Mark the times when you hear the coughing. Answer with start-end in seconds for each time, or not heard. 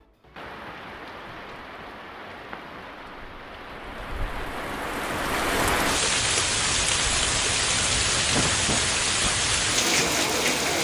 8.2-9.3.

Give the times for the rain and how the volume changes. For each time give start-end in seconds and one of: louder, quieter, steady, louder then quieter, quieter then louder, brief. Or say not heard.
0.0-10.8 louder.